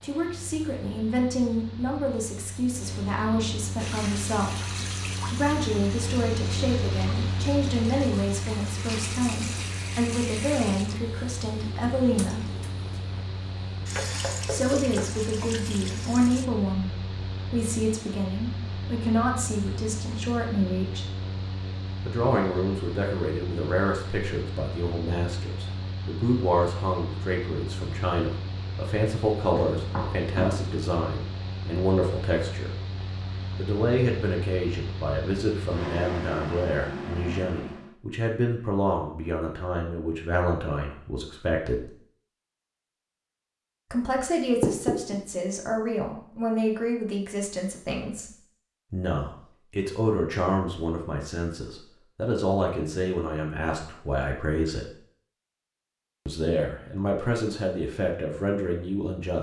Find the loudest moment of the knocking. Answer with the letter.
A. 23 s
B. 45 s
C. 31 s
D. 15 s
B.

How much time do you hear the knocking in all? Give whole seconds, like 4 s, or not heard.
3 s.